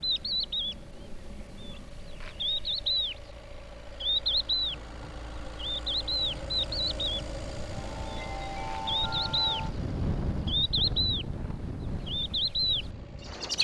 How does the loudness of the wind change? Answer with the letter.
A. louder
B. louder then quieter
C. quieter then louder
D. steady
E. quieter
B.